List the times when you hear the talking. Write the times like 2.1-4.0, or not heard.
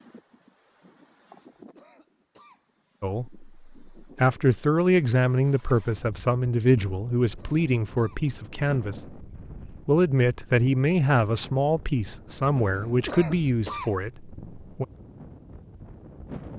3.0-14.8.